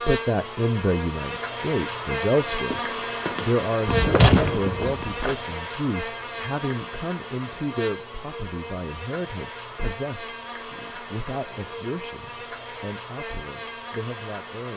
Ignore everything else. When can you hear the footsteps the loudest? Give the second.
4 s.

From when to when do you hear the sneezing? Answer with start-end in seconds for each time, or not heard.
not heard.